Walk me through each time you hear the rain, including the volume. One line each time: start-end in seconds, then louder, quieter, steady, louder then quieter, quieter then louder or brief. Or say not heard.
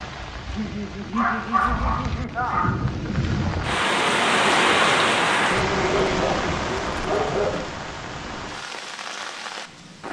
0.0-10.0 louder then quieter.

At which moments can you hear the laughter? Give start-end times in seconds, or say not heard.
0.6-2.7, 5.5-6.5.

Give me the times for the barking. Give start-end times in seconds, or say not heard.
1.0-2.9, 5.8-7.7.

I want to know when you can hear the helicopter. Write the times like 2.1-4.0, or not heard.
not heard.